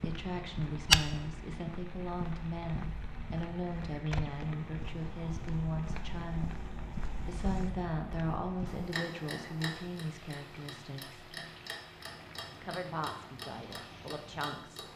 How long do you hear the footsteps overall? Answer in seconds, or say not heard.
9 s.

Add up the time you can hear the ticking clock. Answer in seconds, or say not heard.
15 s.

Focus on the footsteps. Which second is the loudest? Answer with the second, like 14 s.
1 s.